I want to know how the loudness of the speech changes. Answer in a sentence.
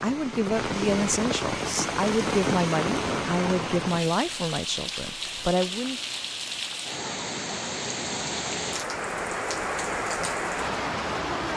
The loudness of the speech stays about the same.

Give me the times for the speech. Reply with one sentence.
You can hear the speech from 0.0 to 6.0 s.